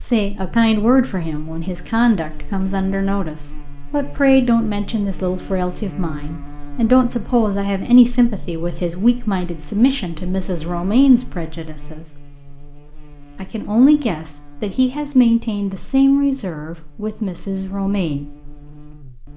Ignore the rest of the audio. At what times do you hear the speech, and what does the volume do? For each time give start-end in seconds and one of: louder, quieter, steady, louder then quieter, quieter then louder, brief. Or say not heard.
0.0-12.1 steady
13.3-18.3 quieter.